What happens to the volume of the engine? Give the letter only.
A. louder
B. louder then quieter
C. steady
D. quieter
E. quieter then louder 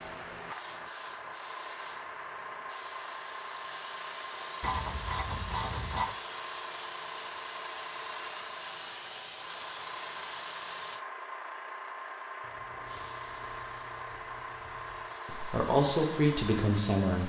C.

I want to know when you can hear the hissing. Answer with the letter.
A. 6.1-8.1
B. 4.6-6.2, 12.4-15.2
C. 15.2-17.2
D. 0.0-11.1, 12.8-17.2
D.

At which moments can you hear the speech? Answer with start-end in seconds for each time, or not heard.
15.2-17.2.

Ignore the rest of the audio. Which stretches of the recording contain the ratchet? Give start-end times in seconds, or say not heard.
4.6-6.2, 12.4-15.2.